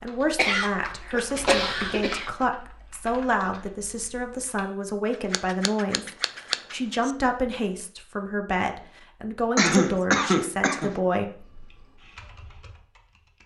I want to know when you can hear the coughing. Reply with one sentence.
You can hear the coughing from 0.3 to 2.3 s and from 9.6 to 10.9 s.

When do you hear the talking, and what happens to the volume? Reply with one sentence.
You can hear the talking from 0.0 to 11.4 s, at a steady volume.